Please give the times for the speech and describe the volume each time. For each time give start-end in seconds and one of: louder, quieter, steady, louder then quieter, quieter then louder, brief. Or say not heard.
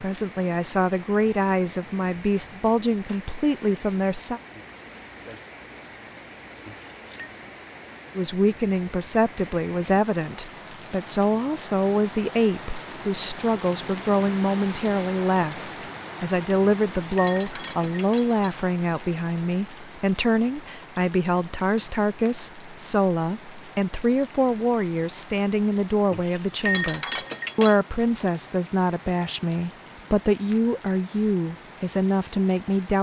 0.0-4.4 steady
8.2-32.9 steady.